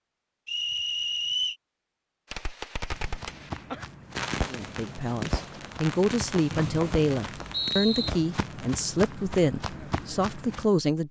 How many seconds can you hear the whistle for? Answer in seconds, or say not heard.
3 s.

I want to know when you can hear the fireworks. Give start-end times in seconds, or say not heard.
2.3-8.7.